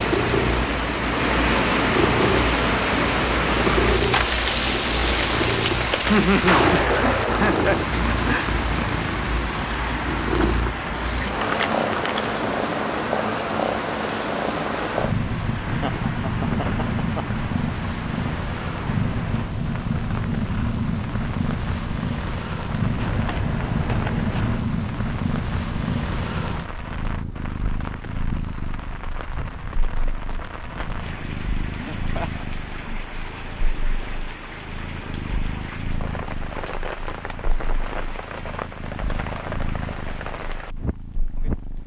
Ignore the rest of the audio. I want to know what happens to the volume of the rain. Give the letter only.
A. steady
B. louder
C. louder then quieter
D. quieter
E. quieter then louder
D.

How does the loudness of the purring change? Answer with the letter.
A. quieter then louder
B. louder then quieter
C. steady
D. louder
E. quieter
E.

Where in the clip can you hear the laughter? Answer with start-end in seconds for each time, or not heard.
6.0-8.5, 15.6-17.4, 31.8-33.0.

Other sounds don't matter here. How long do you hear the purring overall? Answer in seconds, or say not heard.
42 s.